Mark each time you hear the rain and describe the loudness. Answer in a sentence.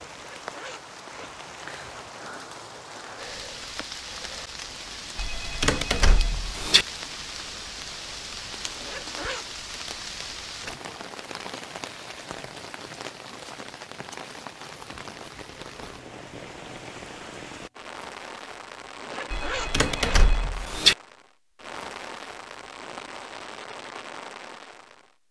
The rain can be heard from 0.0 to 25.2 s, at a steady volume.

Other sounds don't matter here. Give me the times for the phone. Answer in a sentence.
The phone can be heard from 5.2 to 6.8 s and from 19.3 to 20.9 s.